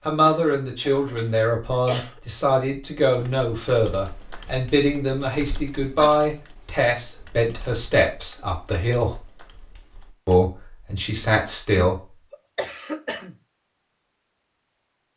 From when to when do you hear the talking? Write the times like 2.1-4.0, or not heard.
0.1-9.2, 10.2-11.9.